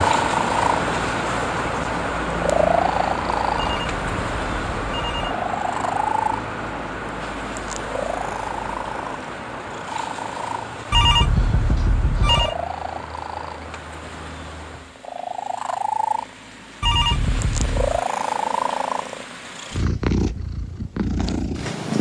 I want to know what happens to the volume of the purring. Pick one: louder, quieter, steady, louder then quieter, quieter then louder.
quieter then louder.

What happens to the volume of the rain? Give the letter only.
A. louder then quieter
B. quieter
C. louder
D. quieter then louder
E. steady
B.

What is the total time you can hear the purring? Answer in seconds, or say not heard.
22 s.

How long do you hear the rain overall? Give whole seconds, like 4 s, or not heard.
15 s.